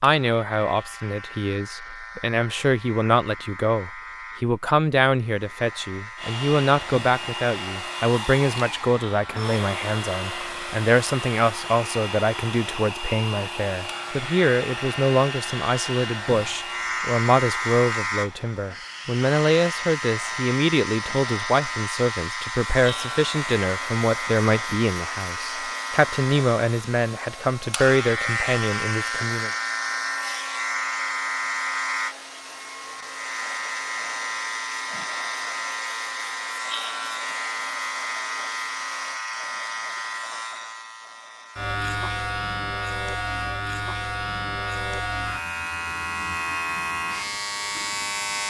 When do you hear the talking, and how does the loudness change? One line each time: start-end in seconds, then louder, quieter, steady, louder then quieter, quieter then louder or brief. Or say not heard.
0.0-29.5 steady.